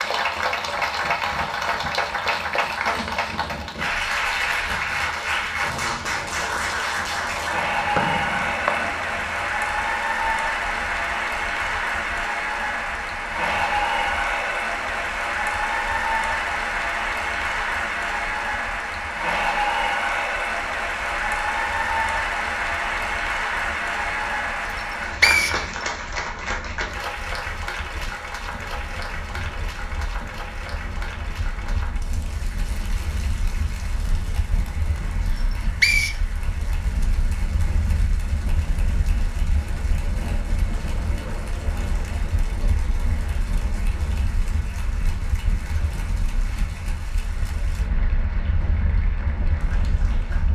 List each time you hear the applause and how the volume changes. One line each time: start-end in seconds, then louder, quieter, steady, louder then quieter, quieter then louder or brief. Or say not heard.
0.0-50.5 quieter.